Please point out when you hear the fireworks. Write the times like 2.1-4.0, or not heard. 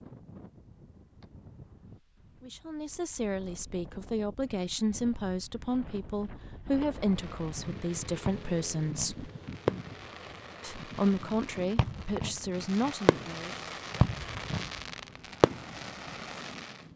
6.8-16.8.